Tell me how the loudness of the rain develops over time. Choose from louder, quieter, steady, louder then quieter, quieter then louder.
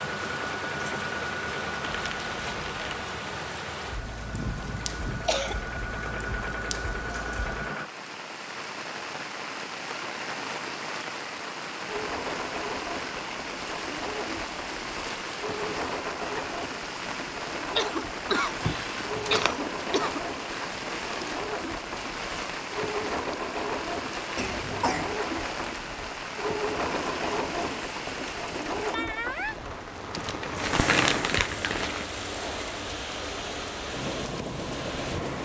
steady.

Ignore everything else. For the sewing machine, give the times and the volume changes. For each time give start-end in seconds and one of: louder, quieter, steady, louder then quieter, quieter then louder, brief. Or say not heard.
0.0-7.9 quieter then louder
11.8-35.4 steady.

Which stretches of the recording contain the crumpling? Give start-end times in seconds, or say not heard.
1.9-3.1, 18.6-19.6, 30.1-32.0.